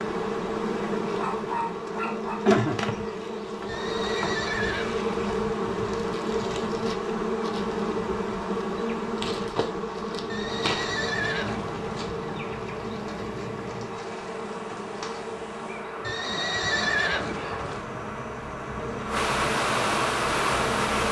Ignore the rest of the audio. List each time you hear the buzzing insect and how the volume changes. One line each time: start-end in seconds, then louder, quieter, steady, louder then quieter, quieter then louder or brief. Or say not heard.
0.0-21.0 quieter.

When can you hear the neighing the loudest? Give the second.
17 s.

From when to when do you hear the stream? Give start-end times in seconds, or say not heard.
10.3-21.0.